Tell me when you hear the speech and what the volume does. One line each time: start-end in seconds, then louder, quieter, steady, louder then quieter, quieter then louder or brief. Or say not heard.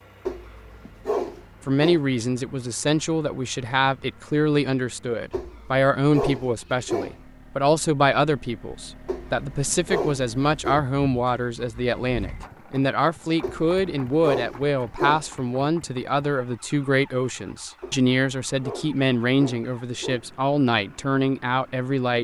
1.6-22.1 steady.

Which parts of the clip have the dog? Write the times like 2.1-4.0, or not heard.
0.2-2.0, 5.3-7.2, 9.1-10.8, 13.4-15.5, 17.8-20.2.